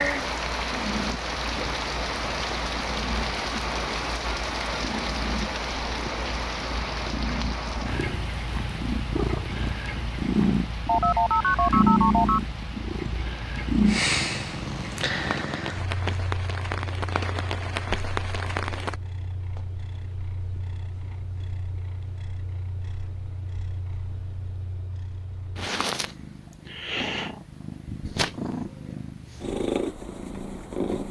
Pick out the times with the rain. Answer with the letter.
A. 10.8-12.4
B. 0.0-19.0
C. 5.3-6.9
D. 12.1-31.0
B.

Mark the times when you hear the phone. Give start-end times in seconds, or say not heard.
10.8-12.4.